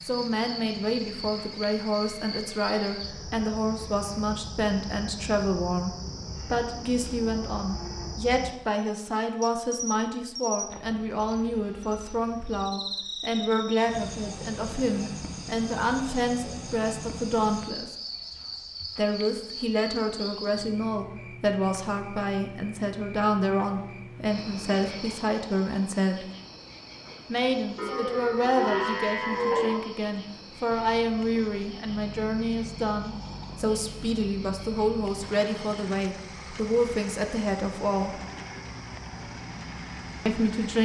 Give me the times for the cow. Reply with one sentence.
You can hear the cow from 6.0 to 8.1 s and from 27.8 to 29.8 s.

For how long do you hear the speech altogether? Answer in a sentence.
You can hear the speech for 36 seconds altogether.